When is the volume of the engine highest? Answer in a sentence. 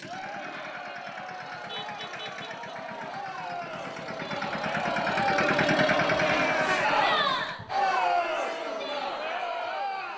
The volume of the engine peaks at 6 seconds.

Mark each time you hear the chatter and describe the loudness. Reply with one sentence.
The chatter can be heard from 0.0 to 10.1 s, getting louder.